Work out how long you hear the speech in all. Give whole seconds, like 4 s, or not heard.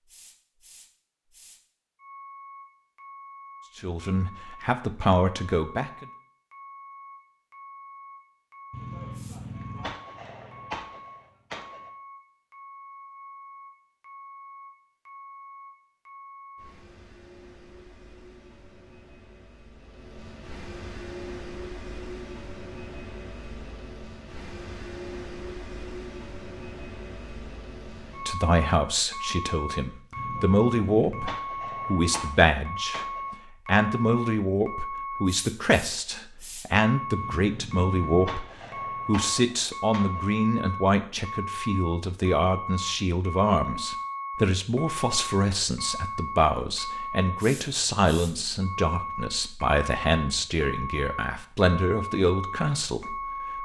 27 s.